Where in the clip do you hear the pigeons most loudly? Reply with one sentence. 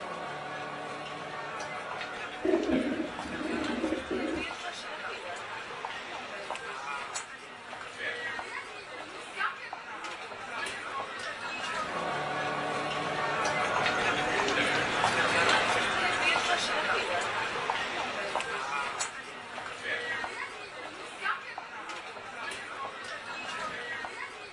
The loudest moment of the pigeons is at 3 seconds.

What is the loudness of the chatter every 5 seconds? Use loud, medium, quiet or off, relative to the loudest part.
medium, medium, loud, loud, medium.